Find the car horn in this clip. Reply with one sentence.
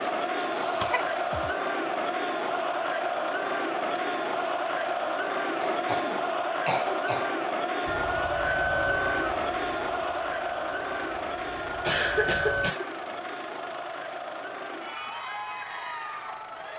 The car horn can't be heard in this clip.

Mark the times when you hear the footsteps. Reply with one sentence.
You can't hear the footsteps here.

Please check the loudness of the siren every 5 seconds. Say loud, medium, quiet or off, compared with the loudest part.
off, loud, loud, off.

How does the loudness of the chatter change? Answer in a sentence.
The volume of the chatter goes down.